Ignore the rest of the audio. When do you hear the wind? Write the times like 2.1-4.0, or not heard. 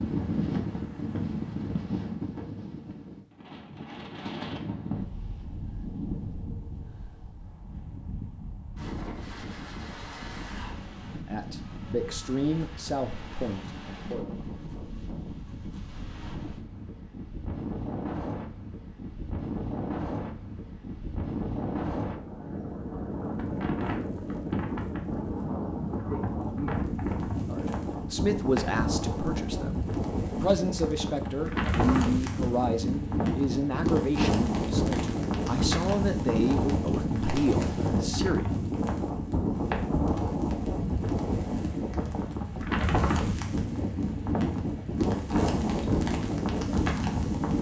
0.0-47.5.